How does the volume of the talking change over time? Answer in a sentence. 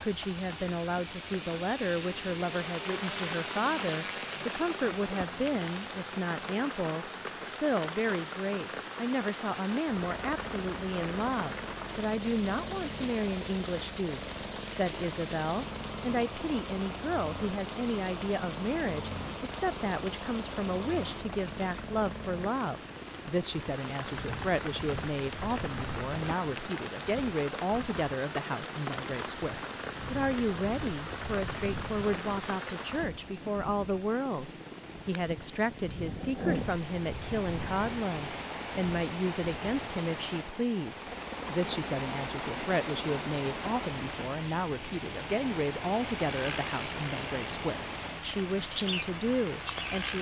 The volume of the talking stays about the same.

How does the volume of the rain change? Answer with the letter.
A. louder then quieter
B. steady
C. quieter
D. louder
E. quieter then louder
B.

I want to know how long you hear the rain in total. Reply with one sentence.
The rain can be heard for 50 seconds in total.